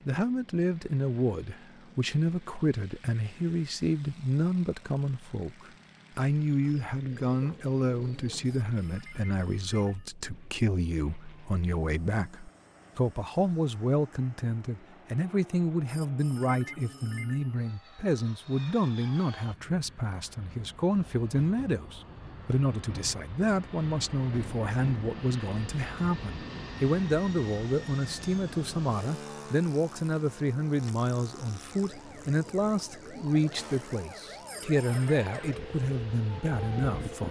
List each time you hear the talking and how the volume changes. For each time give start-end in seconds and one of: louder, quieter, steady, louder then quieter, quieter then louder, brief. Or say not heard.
0.1-37.2 steady.